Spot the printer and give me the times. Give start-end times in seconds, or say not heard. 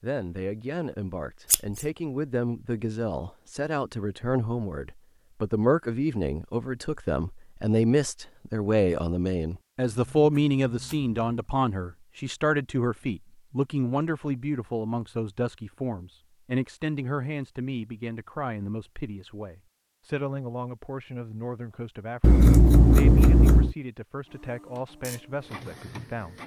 24.2-26.4.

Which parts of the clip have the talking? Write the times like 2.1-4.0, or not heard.
0.0-26.4.